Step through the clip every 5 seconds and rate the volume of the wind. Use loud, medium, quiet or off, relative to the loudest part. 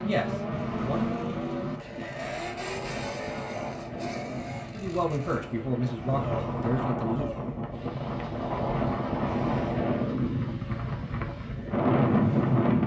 quiet, medium, loud.